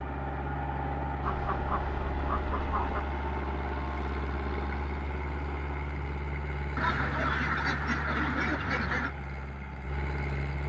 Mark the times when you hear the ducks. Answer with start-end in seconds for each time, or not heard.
1.2-3.0, 6.8-9.1.